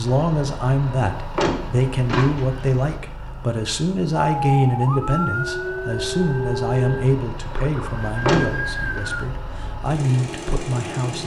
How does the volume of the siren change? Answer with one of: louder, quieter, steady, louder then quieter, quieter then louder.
quieter then louder.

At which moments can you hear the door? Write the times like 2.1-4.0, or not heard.
1.1-2.9, 8.2-9.0.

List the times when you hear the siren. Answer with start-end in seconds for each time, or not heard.
4.2-9.2.